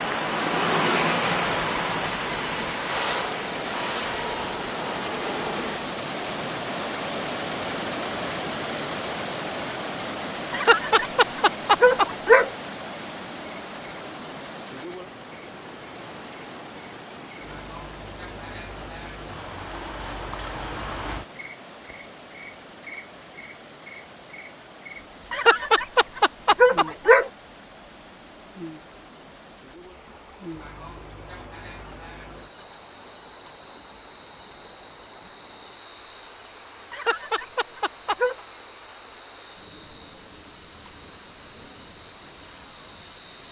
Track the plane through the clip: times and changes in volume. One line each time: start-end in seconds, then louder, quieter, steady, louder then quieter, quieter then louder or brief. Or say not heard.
0.0-5.9 quieter.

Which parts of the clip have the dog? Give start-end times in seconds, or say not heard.
10.5-12.5, 25.3-27.3, 36.9-38.4.